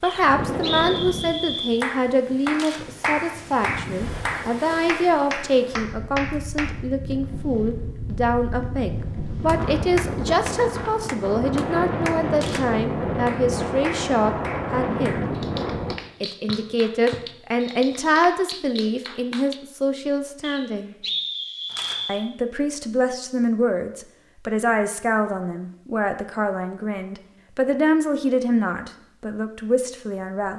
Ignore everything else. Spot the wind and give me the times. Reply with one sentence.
You can hear the wind from 0.0 to 15.9 s.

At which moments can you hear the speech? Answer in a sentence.
The speech can be heard from 0.0 to 15.2 s, from 16.2 to 20.9 s and from 22.1 to 30.5 s.